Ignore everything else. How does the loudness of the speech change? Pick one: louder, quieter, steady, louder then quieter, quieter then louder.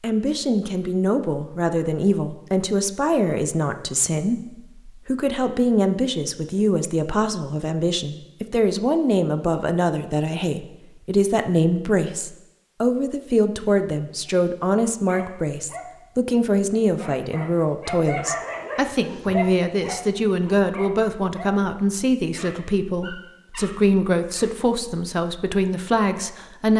steady.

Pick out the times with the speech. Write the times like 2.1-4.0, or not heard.
0.0-26.7.